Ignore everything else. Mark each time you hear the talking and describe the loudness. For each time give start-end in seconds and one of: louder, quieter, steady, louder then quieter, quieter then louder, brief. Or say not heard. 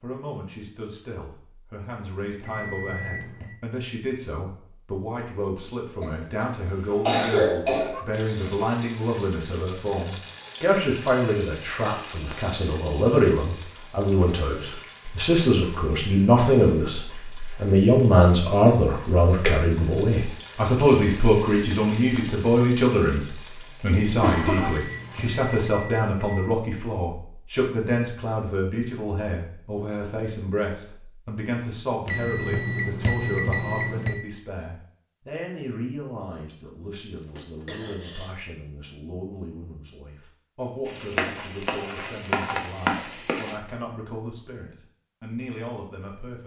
0.0-46.4 louder then quieter.